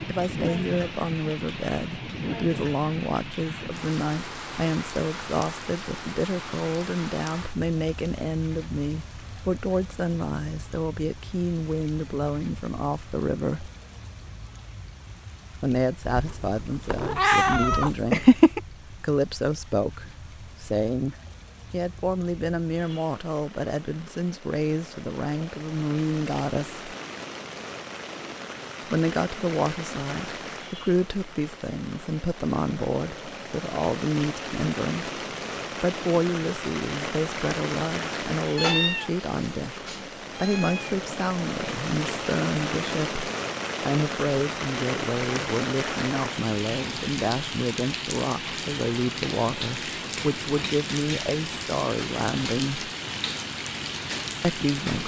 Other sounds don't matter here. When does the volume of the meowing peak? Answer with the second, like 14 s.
18 s.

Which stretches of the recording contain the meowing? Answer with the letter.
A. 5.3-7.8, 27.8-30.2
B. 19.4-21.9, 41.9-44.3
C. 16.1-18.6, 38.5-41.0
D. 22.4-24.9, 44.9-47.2
C.